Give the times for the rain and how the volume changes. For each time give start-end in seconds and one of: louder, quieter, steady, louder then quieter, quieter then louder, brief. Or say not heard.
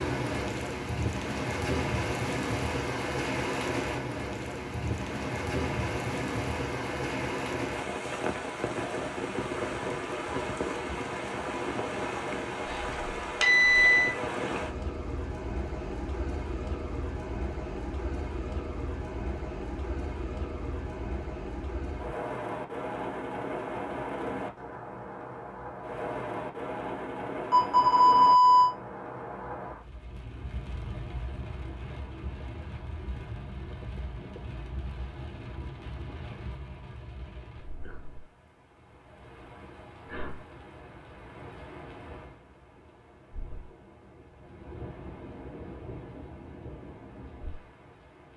0.0-48.3 quieter.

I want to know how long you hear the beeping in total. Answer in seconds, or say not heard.
3 s.